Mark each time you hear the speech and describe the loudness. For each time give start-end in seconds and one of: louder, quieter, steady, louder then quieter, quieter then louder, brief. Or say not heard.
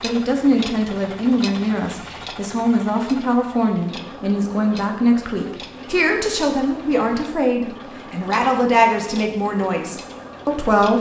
0.0-10.9 steady.